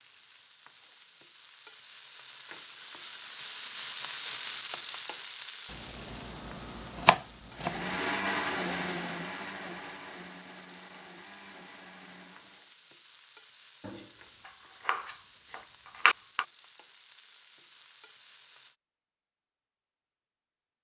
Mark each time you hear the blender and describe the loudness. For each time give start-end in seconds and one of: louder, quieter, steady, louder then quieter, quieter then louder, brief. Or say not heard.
7.5-12.8 quieter.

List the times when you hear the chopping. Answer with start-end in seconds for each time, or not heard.
5.7-8.0, 13.8-16.4.